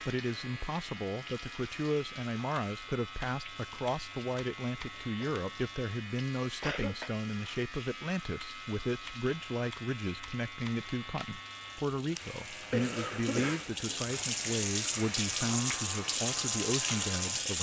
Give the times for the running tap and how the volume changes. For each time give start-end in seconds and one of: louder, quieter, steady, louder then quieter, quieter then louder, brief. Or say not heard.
0.0-17.5 louder.